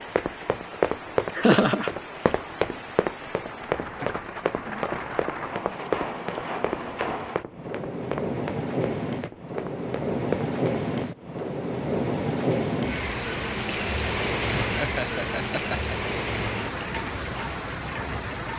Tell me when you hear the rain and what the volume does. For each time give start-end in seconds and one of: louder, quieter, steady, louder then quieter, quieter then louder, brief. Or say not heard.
0.0-18.5 louder.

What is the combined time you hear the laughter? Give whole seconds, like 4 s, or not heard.
2 s.